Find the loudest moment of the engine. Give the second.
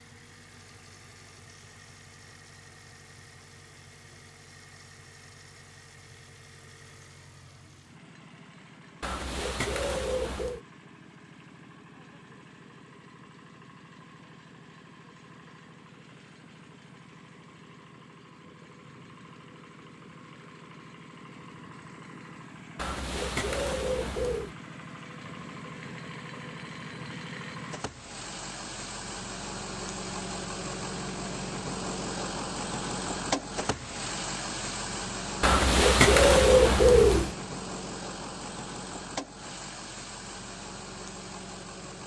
33 s.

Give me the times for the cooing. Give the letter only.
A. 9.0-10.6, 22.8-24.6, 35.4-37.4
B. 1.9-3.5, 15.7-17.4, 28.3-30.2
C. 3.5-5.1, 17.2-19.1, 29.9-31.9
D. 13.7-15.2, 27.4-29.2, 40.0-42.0
A.